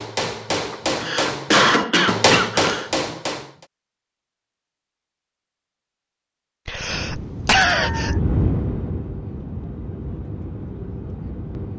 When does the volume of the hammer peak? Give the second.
2 s.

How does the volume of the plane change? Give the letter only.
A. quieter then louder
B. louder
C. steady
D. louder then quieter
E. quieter
D.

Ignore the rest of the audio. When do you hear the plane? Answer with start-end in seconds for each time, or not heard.
6.8-11.7.